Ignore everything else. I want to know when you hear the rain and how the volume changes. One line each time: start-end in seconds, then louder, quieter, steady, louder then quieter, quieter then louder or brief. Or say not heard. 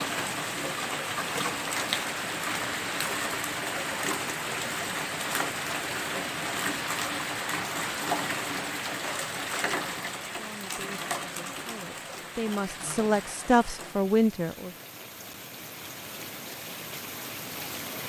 0.0-18.0 quieter.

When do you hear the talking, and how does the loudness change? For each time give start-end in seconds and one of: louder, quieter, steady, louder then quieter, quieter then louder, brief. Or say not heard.
10.3-14.7 louder.